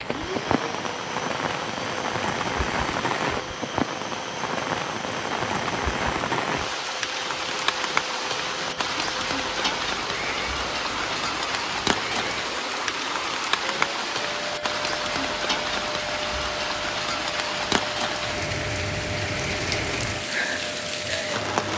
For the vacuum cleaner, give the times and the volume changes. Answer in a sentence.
You can hear the vacuum cleaner from 0.0 to 21.7 s, at a steady volume.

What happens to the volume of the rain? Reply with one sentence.
The volume of the rain stays about the same.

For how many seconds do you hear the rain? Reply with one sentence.
You can hear the rain for 22 seconds altogether.